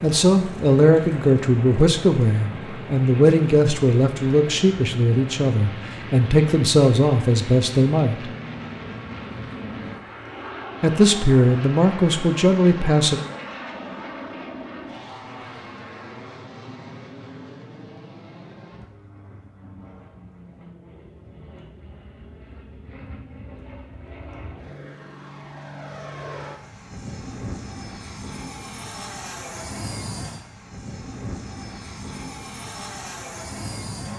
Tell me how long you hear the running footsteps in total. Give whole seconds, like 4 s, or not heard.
not heard.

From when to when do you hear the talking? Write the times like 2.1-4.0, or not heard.
0.0-8.2, 10.8-13.2.